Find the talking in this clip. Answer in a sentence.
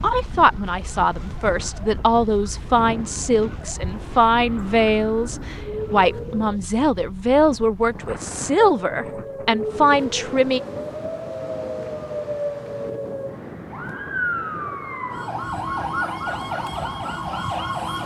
The talking can be heard from 0.0 to 10.6 s.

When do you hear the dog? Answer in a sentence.
The dog can't be heard in this clip.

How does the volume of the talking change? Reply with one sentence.
The loudness of the talking stays about the same.